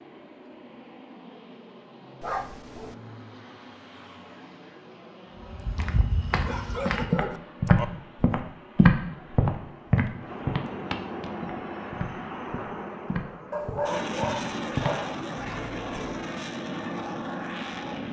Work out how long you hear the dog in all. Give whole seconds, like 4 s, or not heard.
4 s.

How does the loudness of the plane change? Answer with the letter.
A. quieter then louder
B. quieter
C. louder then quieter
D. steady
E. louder
E.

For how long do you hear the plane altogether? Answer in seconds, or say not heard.
18 s.